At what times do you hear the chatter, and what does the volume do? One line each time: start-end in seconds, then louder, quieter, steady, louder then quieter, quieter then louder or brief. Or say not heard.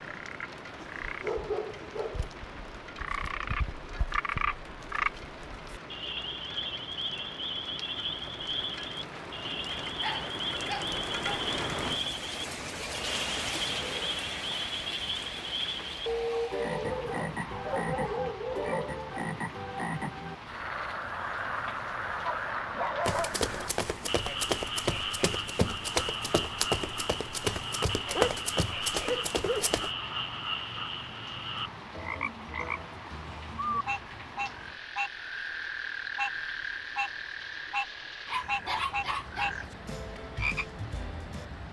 not heard.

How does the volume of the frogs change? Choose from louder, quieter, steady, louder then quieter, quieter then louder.
steady.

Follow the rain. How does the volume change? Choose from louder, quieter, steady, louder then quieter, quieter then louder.
louder then quieter.